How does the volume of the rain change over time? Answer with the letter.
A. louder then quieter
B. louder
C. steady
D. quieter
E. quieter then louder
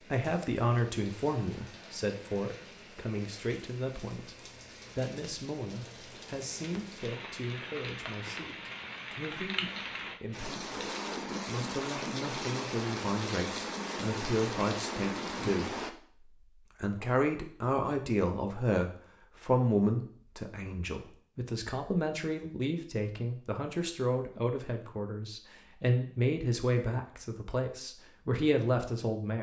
B.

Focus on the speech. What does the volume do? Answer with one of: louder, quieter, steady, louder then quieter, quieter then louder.
quieter then louder.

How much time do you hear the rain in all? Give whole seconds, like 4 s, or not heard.
16 s.